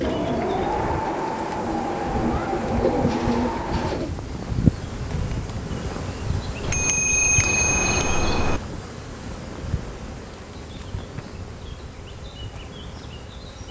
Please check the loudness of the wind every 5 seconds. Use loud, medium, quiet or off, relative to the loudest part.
loud, medium, quiet.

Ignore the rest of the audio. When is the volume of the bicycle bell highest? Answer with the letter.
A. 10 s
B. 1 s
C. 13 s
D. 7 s
D.